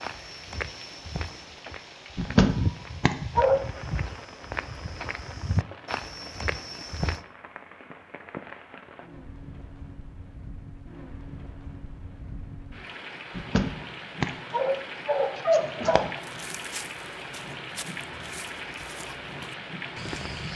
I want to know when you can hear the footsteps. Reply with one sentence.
The footsteps can be heard from 0.0 to 7.2 s and from 16.2 to 20.5 s.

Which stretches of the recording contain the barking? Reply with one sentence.
The barking can be heard from 2.1 to 3.6 s and from 13.3 to 16.2 s.